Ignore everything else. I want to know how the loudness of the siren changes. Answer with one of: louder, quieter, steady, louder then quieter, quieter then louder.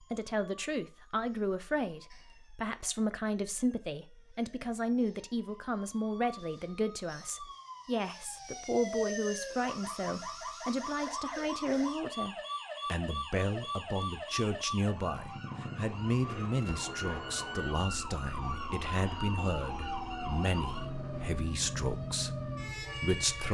louder.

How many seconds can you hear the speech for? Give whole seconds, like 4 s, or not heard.
23 s.